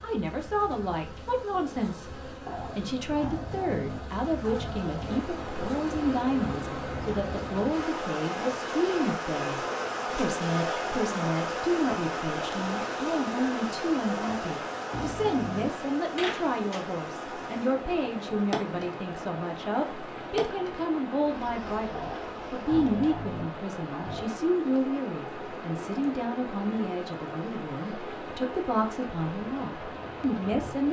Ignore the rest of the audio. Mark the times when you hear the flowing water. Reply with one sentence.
You can hear the flowing water from 5.0 to 30.8 s.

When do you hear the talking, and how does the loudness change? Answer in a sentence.
The talking can be heard from 0.0 to 30.8 s, at a steady volume.